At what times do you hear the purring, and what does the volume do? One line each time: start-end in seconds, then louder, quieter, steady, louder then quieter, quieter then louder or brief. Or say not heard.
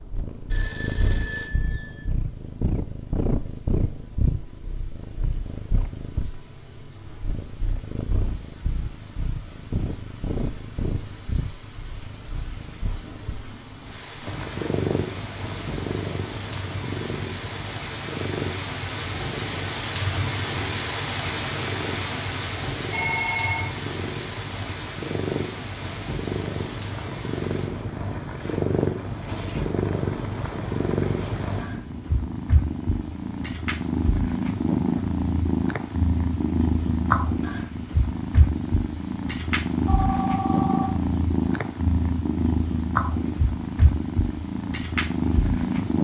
0.0-46.0 louder.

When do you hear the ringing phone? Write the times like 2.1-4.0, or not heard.
0.5-2.0, 22.9-23.7, 39.9-40.9.